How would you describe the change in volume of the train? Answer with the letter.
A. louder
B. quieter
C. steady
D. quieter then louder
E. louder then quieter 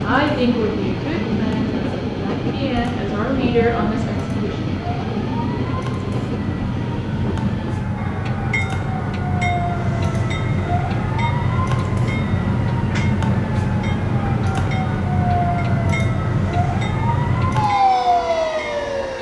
B.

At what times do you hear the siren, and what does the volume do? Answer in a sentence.
The siren can be heard from 0.0 to 19.1 s, getting louder.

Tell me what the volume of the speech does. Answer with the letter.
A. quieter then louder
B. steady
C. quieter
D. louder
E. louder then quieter
A.